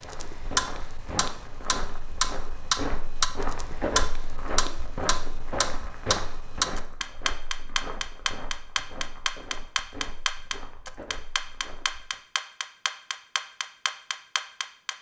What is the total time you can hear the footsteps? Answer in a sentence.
The footsteps can be heard for 12 seconds in total.